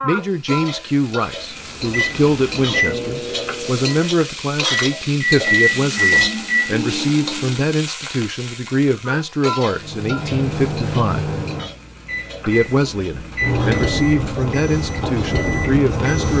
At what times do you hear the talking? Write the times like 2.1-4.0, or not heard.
0.0-11.3, 12.4-16.3.